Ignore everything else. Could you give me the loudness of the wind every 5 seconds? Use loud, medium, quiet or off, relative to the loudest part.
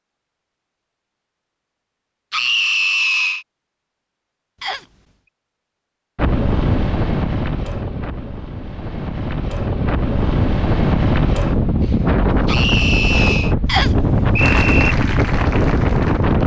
off, medium, loud, loud.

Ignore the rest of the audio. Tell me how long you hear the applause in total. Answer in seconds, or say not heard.
2 s.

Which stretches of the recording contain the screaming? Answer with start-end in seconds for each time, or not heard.
2.3-3.5, 12.4-13.6.